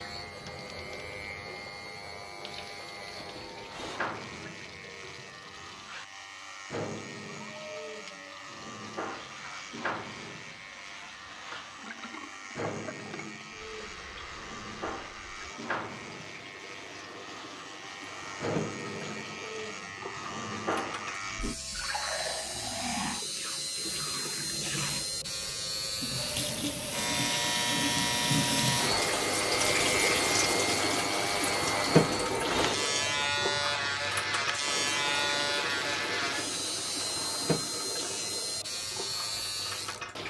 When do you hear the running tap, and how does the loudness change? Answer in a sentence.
The running tap can be heard from 0.0 to 40.2 s, getting louder.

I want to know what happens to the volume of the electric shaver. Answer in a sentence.
The volume of the electric shaver goes up.